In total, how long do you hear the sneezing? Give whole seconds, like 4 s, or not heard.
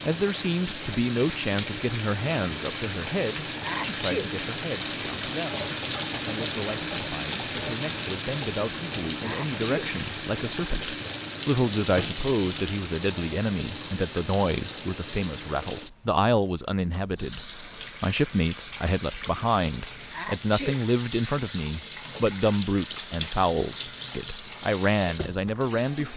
2 s.